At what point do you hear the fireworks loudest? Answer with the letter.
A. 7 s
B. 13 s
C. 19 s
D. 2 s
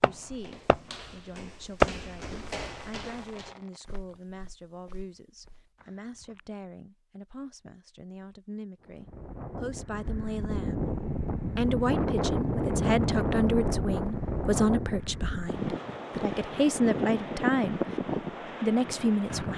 D.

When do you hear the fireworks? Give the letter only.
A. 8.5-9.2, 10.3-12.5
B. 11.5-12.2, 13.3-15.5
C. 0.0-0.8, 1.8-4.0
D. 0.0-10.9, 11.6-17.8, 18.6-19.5
C.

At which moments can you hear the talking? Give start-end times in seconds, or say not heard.
0.0-10.9, 11.6-17.8, 18.6-19.5.